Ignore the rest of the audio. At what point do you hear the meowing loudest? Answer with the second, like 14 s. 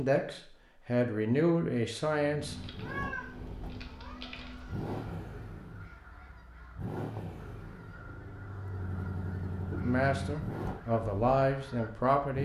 3 s.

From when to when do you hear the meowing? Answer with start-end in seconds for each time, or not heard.
2.4-5.1.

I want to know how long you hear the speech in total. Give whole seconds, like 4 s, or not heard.
5 s.